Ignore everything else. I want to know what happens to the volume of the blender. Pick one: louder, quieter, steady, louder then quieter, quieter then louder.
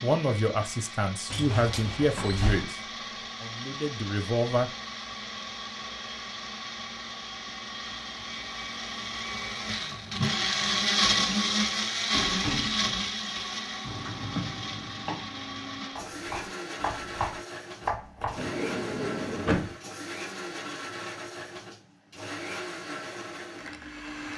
louder then quieter.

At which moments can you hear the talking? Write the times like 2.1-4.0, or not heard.
0.0-2.8, 3.4-4.7.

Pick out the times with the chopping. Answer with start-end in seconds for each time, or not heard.
13.8-18.4.